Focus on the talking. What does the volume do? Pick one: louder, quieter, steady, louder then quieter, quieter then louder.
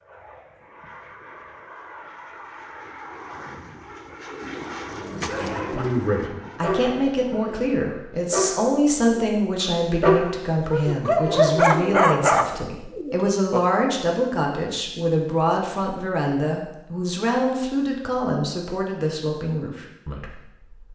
steady.